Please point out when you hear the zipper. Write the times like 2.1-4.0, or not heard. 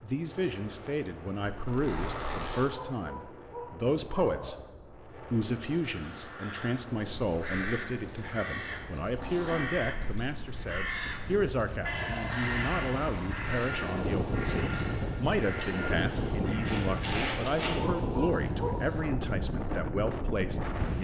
1.4-2.7, 7.8-9.7, 16.6-17.8.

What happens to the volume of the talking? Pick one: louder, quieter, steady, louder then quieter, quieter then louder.
steady.